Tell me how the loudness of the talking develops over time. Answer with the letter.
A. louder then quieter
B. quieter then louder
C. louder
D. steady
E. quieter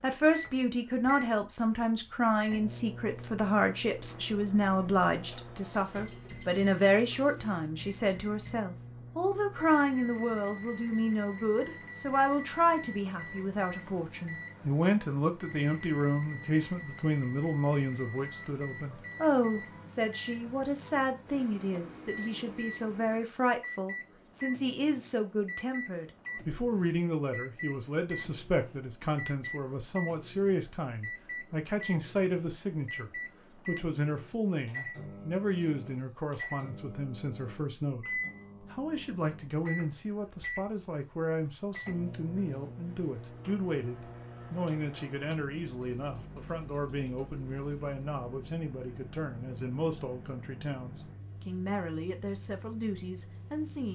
E.